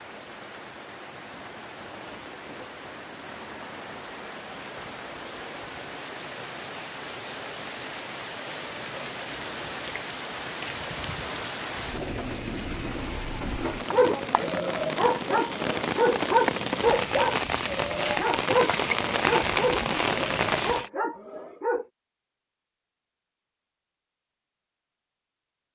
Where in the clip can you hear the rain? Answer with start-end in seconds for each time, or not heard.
0.0-20.9.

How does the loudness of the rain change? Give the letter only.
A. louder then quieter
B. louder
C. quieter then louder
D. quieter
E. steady
B.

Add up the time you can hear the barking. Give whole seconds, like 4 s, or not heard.
8 s.